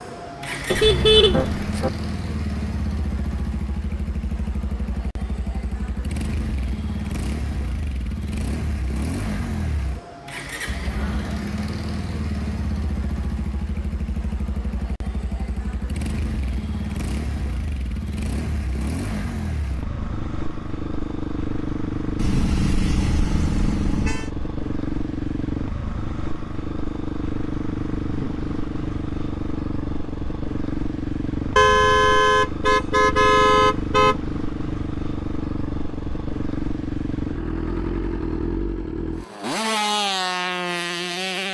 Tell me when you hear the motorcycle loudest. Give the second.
40 s.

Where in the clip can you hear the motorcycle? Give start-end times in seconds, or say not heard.
0.0-41.4.